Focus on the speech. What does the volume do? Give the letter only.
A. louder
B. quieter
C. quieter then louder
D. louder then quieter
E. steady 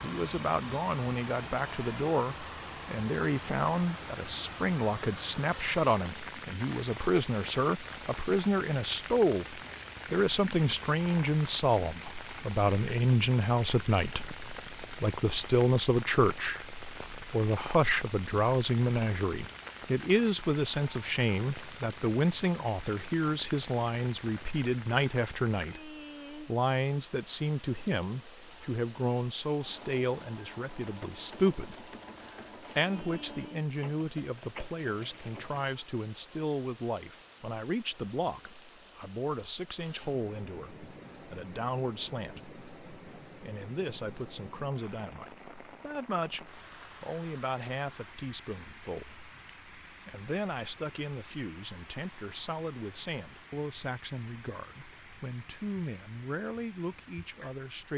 B.